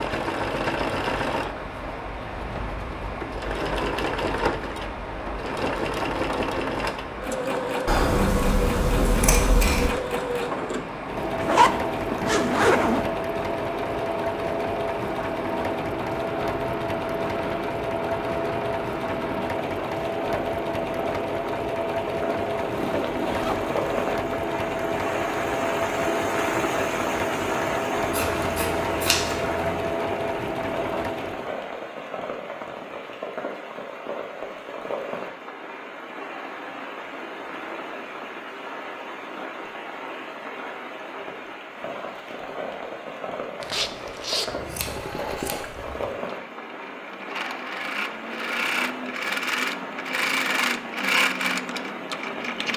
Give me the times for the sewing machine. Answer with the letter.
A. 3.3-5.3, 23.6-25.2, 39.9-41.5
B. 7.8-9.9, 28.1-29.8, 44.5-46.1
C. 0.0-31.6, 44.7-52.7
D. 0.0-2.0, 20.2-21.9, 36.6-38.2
C.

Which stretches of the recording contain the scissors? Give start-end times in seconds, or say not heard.
7.8-9.9, 28.1-29.8, 44.5-46.1.